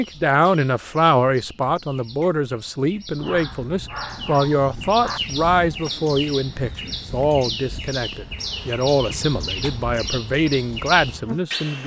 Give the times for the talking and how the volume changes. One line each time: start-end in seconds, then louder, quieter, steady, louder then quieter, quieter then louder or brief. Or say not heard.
0.0-11.8 steady.